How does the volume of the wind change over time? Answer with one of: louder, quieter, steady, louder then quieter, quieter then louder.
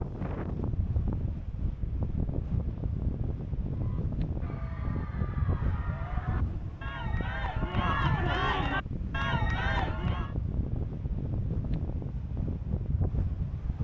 steady.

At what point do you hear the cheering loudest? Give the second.
8 s.